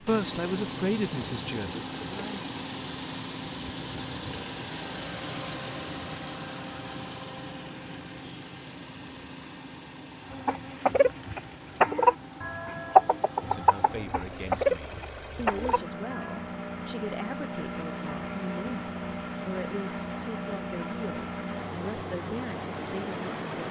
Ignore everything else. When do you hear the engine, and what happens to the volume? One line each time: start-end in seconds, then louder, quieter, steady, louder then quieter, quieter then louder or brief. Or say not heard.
0.0-23.6 quieter then louder.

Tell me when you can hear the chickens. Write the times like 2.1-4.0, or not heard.
10.3-16.4.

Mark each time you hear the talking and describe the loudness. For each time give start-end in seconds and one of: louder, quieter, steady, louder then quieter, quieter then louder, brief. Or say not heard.
0.1-2.5 brief
13.4-23.6 steady.